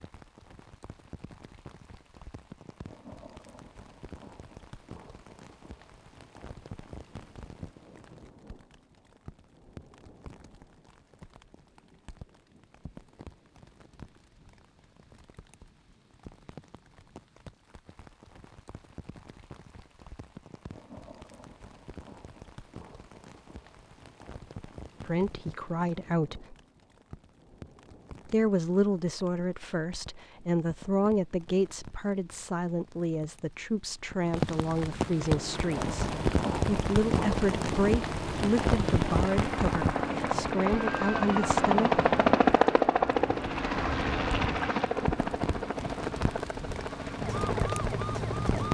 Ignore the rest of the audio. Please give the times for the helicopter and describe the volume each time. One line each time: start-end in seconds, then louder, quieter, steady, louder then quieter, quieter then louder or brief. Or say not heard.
35.1-48.6 louder then quieter.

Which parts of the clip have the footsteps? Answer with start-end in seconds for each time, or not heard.
not heard.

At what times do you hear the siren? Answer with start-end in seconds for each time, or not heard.
47.1-48.6.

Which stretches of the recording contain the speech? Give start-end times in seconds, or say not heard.
25.1-26.6, 28.2-42.0.